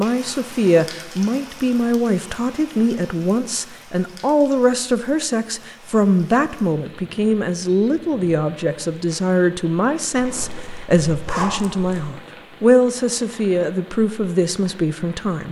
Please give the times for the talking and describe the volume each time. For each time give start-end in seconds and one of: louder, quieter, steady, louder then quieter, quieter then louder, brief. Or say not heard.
0.0-15.4 steady.